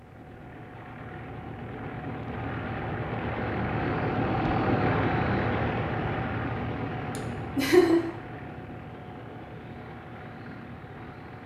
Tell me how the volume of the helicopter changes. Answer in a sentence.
The loudness of the helicopter goes up, then down.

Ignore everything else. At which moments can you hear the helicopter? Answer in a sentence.
The helicopter can be heard from 0.0 to 11.4 s.